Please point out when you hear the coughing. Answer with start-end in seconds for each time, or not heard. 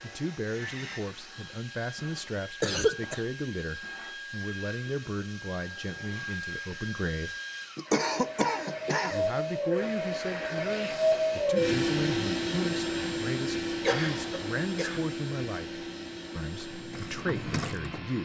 2.6-3.2, 7.8-9.2, 13.8-15.1.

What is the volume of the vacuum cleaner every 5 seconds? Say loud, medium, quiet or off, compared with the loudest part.
quiet, medium, loud, medium.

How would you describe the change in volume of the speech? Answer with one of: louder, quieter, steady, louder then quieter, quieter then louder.
steady.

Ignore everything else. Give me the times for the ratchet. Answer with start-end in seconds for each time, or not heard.
16.6-18.2.